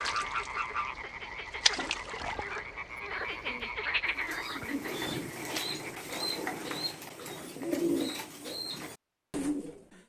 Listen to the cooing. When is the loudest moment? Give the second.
8 s.